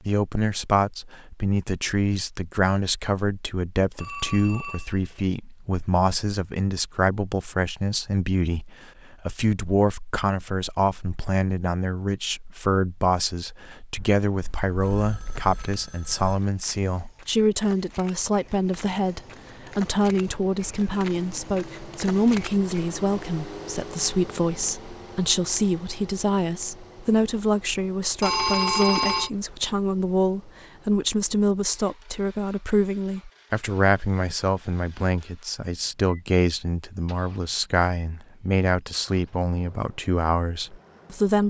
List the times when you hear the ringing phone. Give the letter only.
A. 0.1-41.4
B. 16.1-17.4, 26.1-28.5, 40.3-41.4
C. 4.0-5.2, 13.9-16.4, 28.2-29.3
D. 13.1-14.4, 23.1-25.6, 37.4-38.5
C.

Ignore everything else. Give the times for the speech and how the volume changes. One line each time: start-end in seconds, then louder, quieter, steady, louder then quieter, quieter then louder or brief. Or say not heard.
0.1-41.4 steady.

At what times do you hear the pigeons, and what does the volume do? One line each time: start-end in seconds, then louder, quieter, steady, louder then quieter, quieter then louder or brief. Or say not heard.
not heard.